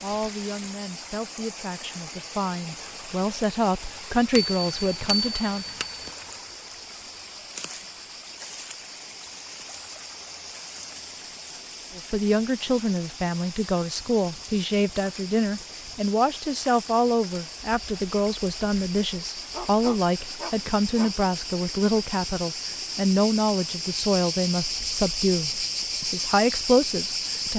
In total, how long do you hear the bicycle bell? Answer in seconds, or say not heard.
2 s.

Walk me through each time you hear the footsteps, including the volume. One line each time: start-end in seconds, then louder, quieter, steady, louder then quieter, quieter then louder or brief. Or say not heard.
not heard.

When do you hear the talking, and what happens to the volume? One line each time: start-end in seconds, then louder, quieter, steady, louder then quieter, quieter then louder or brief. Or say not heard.
0.0-5.7 louder
11.9-27.5 steady.